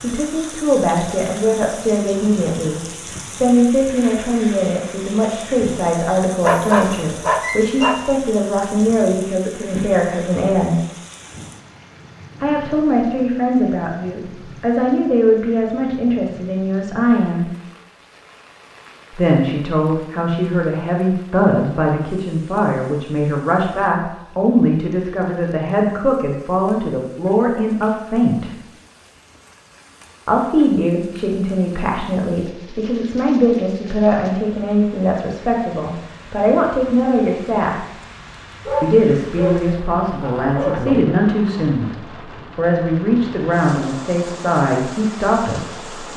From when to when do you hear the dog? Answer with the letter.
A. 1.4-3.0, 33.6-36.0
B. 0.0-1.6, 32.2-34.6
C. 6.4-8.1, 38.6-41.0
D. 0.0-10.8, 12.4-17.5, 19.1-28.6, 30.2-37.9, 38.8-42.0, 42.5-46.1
C.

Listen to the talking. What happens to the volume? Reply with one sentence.
The loudness of the talking stays about the same.